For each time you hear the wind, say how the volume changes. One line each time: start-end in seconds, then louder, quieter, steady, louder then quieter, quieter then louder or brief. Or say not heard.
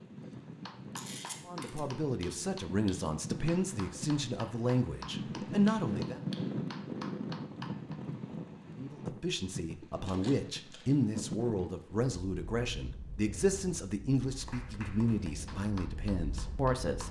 0.0-17.0 louder then quieter.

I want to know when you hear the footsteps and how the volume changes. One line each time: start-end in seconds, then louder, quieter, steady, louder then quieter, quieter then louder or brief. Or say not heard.
not heard.